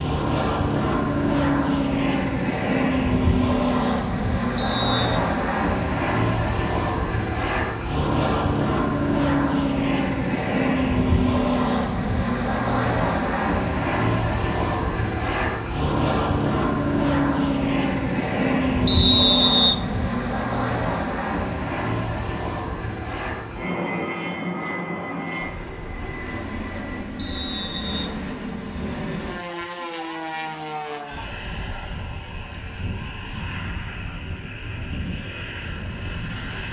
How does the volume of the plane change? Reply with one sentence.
The loudness of the plane goes down.